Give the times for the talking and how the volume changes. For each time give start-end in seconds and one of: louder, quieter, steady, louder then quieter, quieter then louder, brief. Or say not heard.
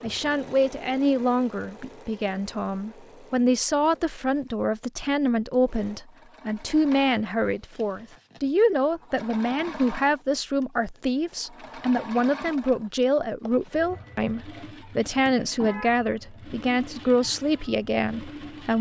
0.0-18.7 steady.